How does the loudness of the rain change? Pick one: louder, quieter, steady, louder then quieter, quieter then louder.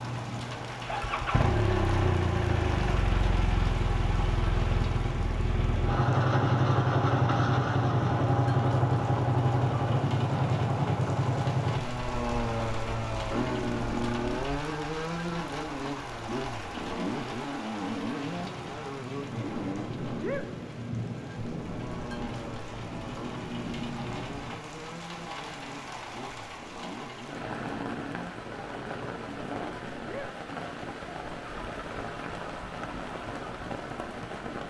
steady.